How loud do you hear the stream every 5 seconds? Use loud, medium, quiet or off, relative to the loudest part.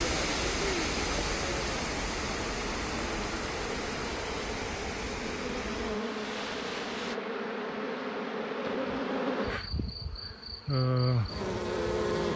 loud, medium, off.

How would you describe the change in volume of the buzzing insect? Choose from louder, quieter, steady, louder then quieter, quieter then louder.
louder.